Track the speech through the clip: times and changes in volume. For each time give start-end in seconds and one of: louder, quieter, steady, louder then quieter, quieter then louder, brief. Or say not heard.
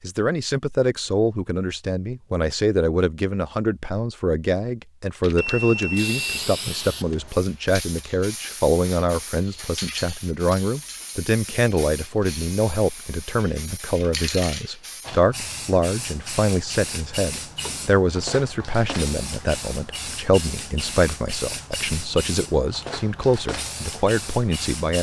0.0-24.9 steady.